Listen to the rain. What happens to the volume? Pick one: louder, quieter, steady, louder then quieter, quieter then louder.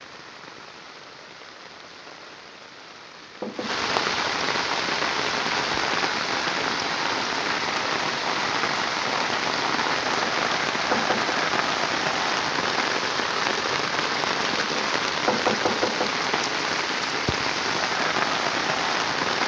louder.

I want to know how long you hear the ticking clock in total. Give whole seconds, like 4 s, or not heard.
not heard.